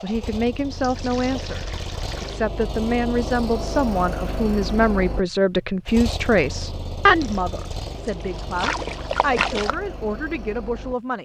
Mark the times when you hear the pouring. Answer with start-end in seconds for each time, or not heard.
0.8-2.5, 7.2-9.8.